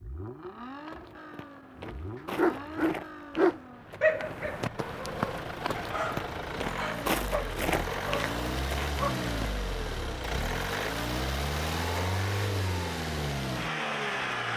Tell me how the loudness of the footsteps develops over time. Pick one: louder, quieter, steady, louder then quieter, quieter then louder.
louder.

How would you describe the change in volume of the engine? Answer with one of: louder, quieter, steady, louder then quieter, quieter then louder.
louder.